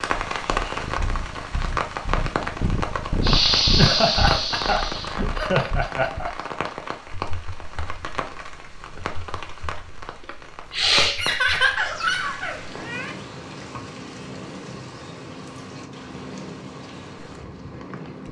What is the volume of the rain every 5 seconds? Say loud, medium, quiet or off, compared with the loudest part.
loud, medium, medium, quiet.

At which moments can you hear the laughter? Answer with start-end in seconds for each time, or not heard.
3.8-6.3, 11.2-13.2.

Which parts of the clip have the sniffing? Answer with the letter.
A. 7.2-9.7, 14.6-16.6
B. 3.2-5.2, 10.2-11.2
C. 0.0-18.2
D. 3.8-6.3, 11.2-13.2
B.